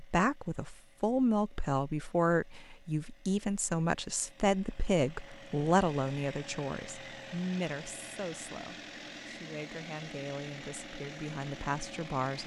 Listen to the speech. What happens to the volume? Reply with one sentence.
The volume of the speech goes down.